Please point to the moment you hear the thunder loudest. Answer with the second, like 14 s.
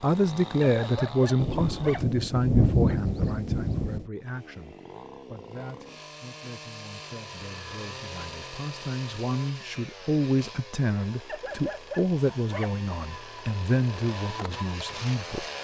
3 s.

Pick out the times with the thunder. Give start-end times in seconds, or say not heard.
1.4-4.0.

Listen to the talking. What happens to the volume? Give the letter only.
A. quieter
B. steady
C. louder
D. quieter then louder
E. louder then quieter
D.